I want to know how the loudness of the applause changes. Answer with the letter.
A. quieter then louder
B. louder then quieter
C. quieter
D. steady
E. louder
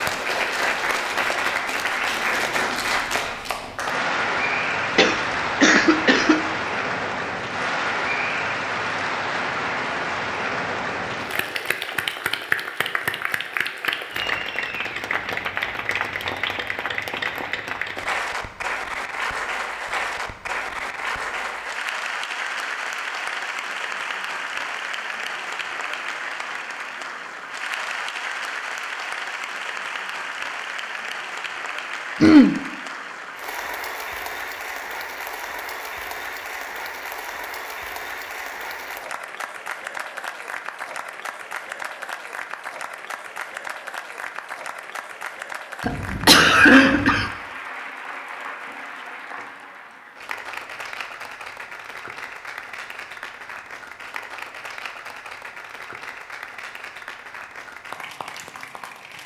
C.